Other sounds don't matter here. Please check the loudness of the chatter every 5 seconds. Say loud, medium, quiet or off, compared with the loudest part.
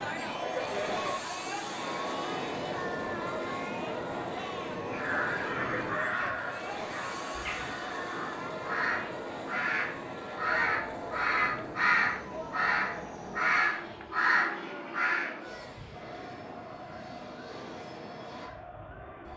loud, loud, medium, medium.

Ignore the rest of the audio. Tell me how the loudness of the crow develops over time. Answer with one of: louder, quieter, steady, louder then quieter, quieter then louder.
louder.